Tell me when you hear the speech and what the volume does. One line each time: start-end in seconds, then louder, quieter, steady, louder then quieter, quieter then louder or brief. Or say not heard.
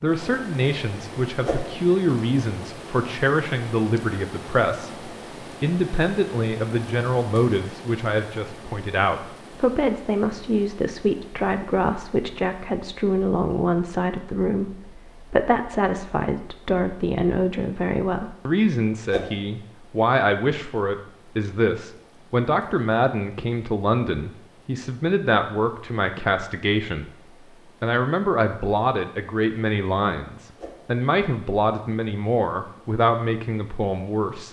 0.0-27.1 steady
27.8-34.4 steady.